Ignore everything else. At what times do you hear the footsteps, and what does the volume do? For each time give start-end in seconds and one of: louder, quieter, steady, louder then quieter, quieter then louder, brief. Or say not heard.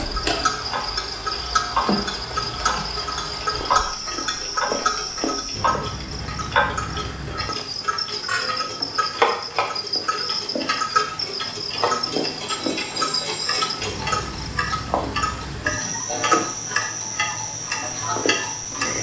not heard.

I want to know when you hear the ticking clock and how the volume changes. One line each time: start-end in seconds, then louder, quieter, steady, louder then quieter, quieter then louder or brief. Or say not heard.
0.0-18.9 steady.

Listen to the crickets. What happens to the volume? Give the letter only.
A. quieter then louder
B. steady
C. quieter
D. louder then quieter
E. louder
B.